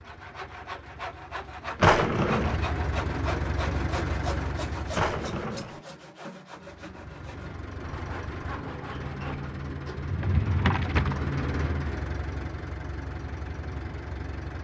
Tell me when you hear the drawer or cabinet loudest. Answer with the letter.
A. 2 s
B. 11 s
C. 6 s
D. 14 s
A.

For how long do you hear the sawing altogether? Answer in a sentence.
You can hear the sawing for 10 seconds altogether.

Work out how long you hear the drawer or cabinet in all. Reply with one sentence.
You can hear the drawer or cabinet for 3 seconds altogether.